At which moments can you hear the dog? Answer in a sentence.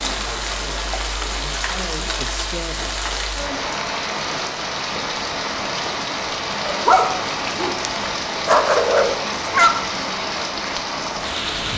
The dog can be heard from 6.6 to 9.8 s.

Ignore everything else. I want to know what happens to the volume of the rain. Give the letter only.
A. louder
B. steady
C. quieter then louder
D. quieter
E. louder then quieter
B.